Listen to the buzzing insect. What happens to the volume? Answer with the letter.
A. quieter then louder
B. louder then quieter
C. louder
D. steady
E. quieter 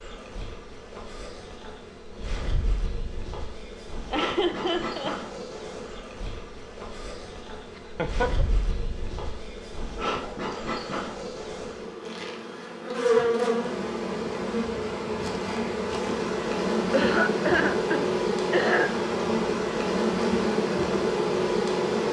C.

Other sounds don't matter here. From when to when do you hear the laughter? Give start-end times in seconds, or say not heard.
4.1-5.2, 7.8-8.4, 16.9-18.9.